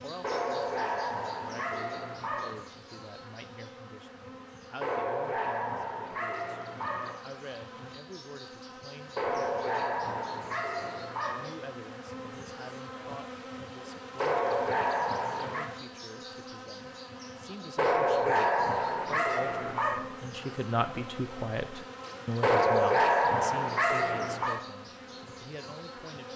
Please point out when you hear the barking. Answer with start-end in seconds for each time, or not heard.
0.2-2.6, 4.8-7.2, 9.2-11.5, 14.2-15.7, 17.8-20.1, 22.4-24.6.